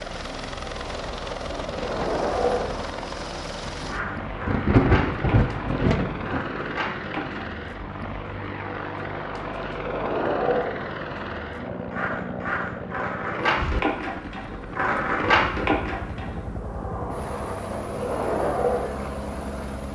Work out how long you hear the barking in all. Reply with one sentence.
You can't hear the barking here.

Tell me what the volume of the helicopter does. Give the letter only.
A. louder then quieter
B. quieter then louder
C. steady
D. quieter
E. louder
C.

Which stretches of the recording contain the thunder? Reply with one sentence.
The thunder can be heard from 1.6 to 6.4 s.